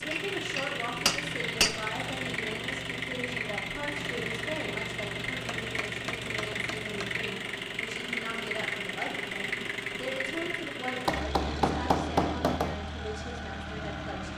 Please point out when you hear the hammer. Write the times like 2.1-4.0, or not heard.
0.1-1.9, 5.5-7.0, 11.1-12.8.